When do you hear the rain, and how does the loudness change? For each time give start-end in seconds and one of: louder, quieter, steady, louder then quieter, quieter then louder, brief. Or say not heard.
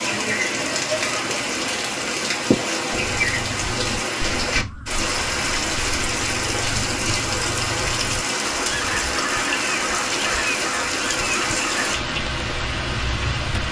0.0-13.6 steady.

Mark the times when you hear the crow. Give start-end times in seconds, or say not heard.
2.9-11.9.